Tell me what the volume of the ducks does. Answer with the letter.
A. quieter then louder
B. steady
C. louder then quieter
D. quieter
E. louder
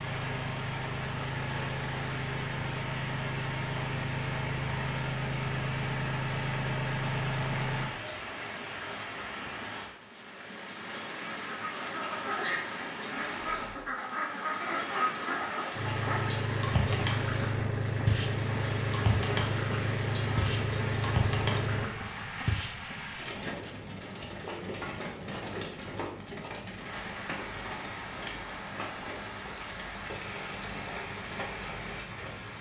B.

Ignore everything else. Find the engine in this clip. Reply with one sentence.
You can hear the engine from 0.0 to 7.9 s and from 15.7 to 21.9 s.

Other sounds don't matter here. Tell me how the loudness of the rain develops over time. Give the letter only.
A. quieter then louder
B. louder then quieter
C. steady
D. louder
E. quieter
C.